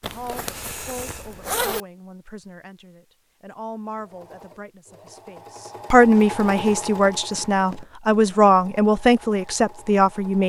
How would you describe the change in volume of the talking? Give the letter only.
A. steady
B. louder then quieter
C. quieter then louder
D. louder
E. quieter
D.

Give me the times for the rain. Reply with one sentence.
You can't hear the rain here.